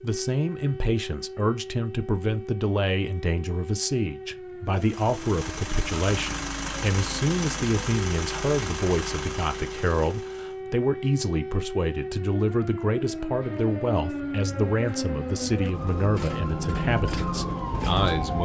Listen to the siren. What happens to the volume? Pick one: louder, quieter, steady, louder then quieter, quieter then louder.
louder.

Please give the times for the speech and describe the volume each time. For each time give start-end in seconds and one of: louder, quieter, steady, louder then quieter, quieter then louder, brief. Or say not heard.
0.0-18.3 steady.